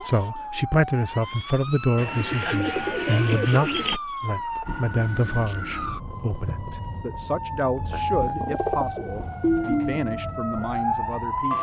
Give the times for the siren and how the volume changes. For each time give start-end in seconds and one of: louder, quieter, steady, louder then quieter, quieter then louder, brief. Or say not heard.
0.0-11.5 louder.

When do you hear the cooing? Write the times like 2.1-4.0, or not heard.
1.9-4.0, 7.9-10.0.